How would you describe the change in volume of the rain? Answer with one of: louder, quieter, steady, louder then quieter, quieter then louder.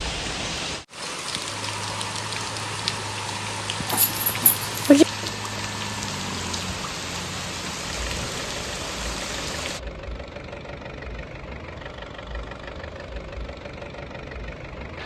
steady.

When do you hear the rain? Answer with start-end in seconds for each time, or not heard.
0.0-9.8.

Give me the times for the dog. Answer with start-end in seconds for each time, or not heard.
3.9-5.0.